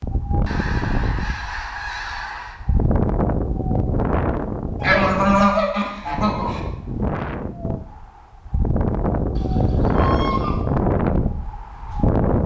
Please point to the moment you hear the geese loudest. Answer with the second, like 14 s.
5 s.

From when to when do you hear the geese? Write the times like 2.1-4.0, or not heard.
0.5-2.5, 4.8-6.6, 9.3-10.7.